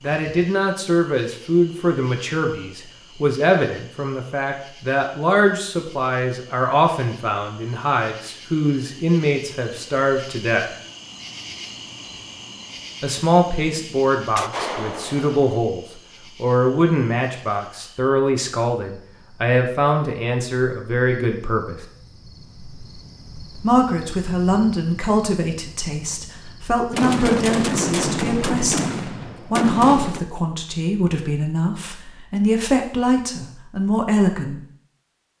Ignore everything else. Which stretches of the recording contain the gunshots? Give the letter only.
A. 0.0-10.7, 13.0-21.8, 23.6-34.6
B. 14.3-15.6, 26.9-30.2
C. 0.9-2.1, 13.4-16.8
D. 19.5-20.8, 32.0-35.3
B.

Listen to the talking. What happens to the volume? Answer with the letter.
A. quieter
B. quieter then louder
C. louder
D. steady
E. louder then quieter
D.